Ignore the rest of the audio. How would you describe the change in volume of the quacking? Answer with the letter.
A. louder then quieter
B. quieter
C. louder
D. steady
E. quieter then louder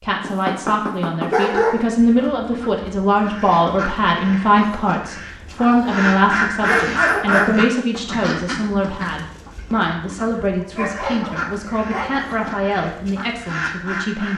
A.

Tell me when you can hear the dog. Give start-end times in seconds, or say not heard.
0.1-1.8, 5.7-7.5, 10.8-12.3.